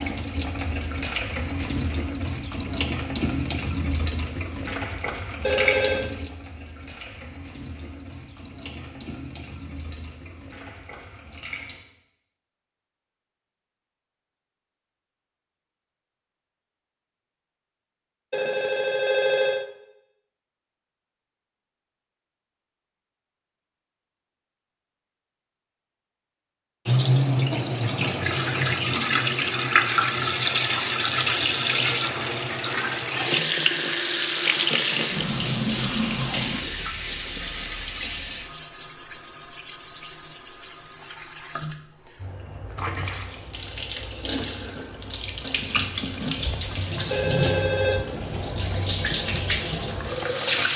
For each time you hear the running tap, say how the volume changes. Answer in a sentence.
The running tap can be heard from 0.0 to 11.8 s, getting quieter; and from 26.9 to 50.7 s, getting quieter then louder.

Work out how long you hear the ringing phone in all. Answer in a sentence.
The ringing phone can be heard for 3 seconds in total.